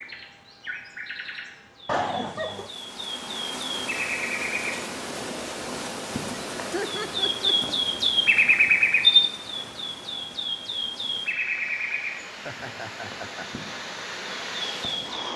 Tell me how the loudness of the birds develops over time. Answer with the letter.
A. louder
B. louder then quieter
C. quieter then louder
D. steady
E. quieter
B.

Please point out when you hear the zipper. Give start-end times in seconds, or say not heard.
not heard.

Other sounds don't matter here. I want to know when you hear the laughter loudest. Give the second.
2 s.